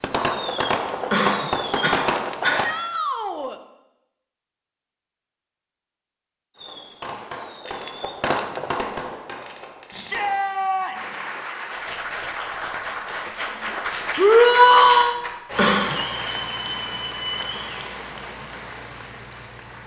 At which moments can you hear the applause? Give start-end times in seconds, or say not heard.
10.9-19.8.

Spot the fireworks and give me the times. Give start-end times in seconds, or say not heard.
0.0-2.7, 6.5-10.4.